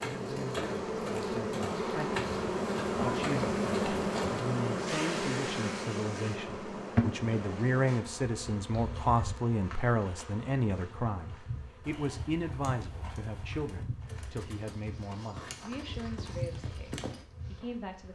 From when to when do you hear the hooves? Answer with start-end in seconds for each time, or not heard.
0.0-4.5, 11.8-17.2.